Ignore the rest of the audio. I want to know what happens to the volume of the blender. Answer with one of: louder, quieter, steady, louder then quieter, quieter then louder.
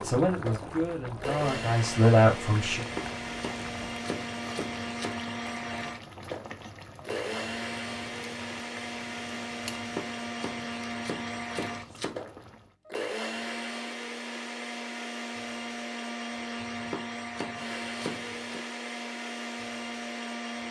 steady.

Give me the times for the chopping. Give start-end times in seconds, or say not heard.
2.8-5.2, 9.7-12.2, 16.6-18.6.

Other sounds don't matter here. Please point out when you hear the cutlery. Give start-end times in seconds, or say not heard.
not heard.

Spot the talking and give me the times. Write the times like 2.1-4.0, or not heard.
0.0-2.9.